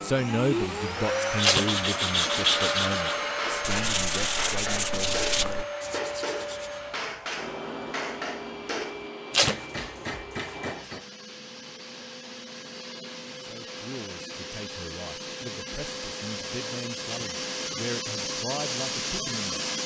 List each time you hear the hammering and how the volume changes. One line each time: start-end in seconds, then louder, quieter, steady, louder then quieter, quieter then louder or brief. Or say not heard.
3.4-11.1 steady.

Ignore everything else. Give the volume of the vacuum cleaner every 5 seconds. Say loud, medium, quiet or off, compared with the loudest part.
loud, medium, medium, loud.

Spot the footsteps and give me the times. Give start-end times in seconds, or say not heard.
not heard.